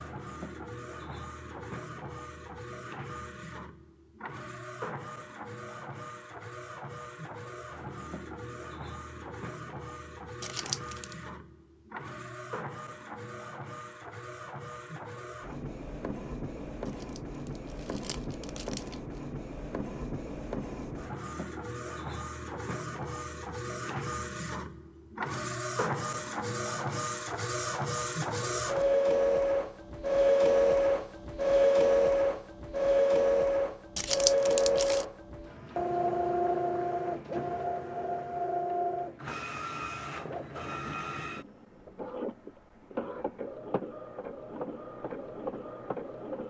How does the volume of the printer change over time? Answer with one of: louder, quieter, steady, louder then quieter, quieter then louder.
louder then quieter.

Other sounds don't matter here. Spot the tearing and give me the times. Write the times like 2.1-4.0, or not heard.
10.4-11.2, 16.9-19.2, 34.0-35.0.